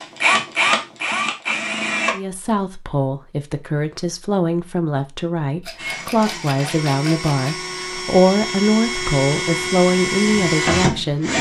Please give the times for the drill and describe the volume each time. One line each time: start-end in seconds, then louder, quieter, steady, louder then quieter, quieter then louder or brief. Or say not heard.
0.0-2.1 brief
5.8-11.3 louder.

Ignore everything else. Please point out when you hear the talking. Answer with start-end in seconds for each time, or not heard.
2.1-11.3.